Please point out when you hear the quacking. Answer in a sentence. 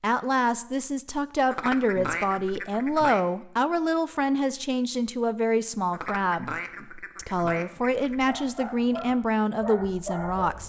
The quacking can be heard from 1.5 to 3.2 s and from 5.9 to 8.3 s.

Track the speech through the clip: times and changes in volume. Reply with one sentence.
You can hear the speech from 0.0 to 10.6 s, at a steady volume.